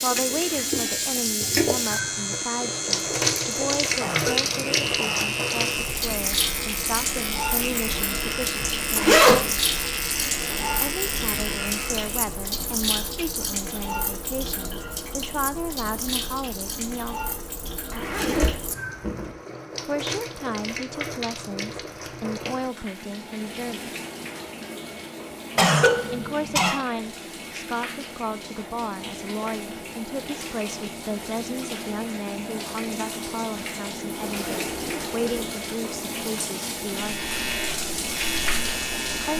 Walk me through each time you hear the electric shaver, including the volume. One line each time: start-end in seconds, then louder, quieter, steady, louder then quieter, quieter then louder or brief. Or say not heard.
0.0-12.3 steady
36.9-39.3 brief.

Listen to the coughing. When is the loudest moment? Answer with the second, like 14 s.
26 s.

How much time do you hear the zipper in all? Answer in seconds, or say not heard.
5 s.